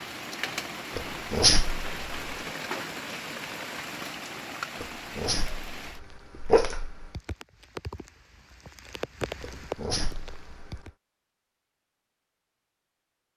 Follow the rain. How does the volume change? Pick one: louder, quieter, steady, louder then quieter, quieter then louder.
quieter then louder.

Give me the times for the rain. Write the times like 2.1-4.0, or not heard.
0.0-10.9.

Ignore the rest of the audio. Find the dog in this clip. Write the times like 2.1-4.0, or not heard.
0.9-2.4, 4.8-7.1, 9.4-10.8.